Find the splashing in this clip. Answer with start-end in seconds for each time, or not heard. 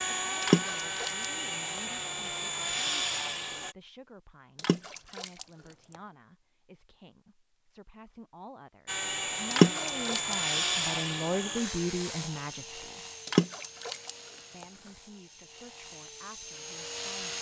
0.4-1.8, 4.5-6.0, 9.5-10.9, 13.2-14.7.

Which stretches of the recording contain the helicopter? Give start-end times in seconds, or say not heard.
0.0-3.8, 8.8-17.3.